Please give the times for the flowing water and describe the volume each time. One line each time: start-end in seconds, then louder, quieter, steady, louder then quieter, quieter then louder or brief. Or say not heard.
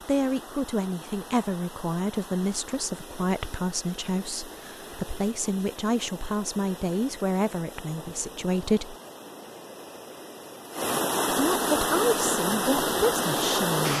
0.0-13.9 louder.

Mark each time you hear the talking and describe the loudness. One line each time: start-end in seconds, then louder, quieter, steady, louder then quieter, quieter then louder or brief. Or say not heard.
0.1-8.9 steady
11.6-13.9 brief.